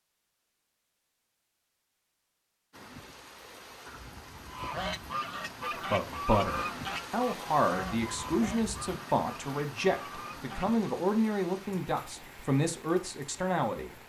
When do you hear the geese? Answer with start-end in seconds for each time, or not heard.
4.5-10.8.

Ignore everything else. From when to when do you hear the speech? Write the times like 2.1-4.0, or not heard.
5.9-13.9.